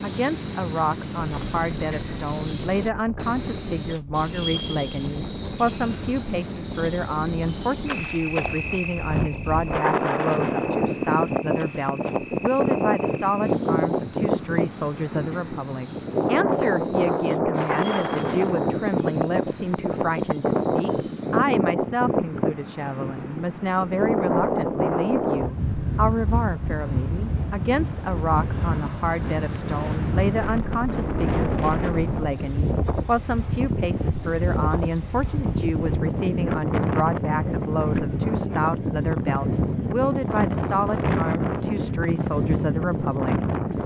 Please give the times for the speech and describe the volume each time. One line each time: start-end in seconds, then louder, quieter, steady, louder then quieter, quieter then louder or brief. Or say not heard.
0.0-43.8 steady.